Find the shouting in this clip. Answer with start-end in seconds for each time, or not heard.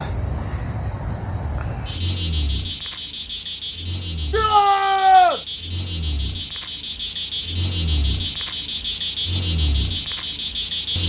4.3-5.4.